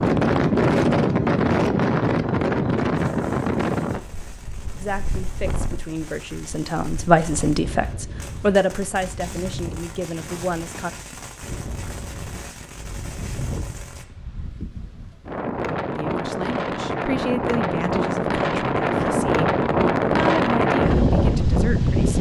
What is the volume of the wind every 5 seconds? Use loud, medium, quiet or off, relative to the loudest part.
loud, quiet, quiet, loud, loud.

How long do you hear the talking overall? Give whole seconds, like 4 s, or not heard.
12 s.